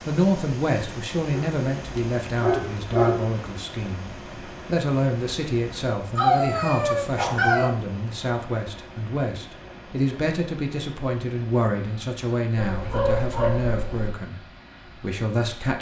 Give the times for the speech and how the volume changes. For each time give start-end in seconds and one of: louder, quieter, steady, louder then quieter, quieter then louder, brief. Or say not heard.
0.1-15.7 steady.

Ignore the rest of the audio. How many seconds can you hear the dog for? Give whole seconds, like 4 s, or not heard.
5 s.